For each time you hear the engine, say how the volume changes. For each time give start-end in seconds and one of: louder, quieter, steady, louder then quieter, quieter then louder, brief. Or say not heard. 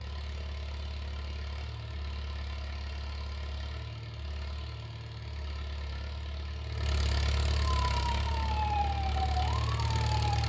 0.0-10.4 louder.